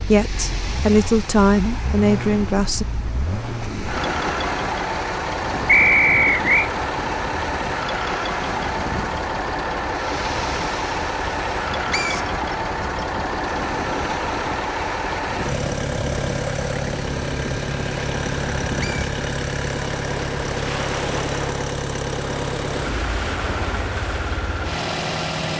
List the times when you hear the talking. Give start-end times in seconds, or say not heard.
0.0-2.9.